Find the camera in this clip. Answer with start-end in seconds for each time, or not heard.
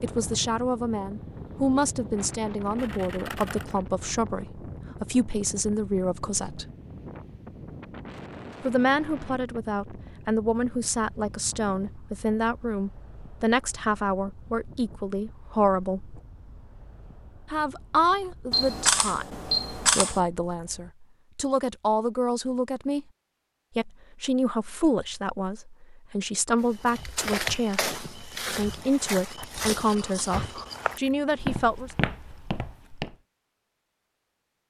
2.8-3.8, 18.5-20.2, 29.4-31.6.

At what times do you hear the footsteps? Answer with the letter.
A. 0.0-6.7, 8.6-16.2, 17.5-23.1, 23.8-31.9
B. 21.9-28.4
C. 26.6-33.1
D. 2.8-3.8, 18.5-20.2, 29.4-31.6
C.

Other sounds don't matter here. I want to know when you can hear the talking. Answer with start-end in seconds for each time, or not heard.
0.0-6.7, 8.6-16.2, 17.5-23.1, 23.8-31.9.